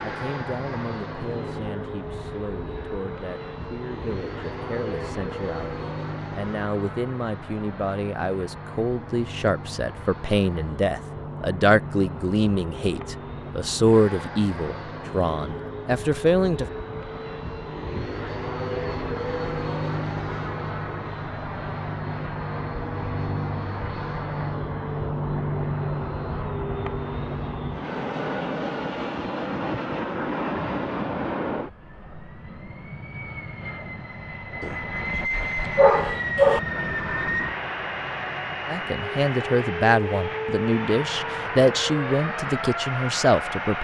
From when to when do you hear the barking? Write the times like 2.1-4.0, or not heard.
34.6-36.6.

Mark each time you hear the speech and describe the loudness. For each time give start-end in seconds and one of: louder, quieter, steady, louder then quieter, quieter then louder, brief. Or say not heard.
0.0-16.6 louder
38.6-43.7 steady.